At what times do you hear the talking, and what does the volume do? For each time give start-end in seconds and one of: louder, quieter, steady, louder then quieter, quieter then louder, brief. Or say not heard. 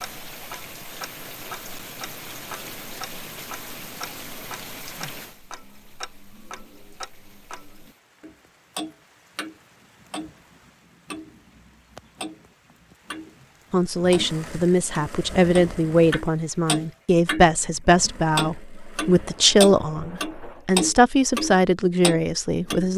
13.7-22.9 steady.